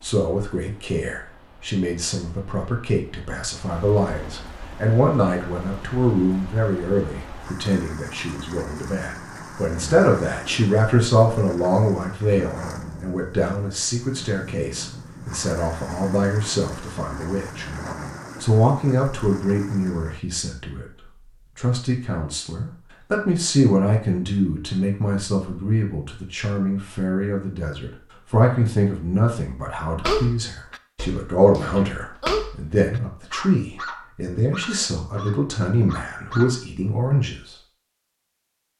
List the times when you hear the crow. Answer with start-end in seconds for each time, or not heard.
not heard.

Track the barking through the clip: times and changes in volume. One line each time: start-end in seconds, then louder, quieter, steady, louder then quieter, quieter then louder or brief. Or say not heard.
30.0-36.6 louder then quieter.